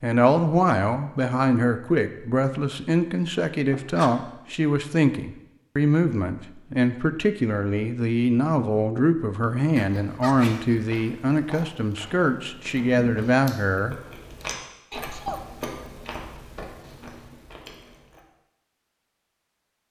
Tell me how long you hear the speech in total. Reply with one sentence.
The speech can be heard for 14 seconds in total.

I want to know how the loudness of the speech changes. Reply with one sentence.
The volume of the speech stays about the same.